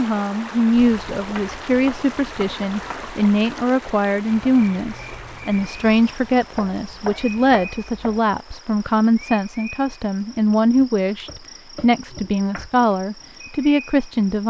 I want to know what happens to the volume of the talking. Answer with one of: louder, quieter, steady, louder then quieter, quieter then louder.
steady.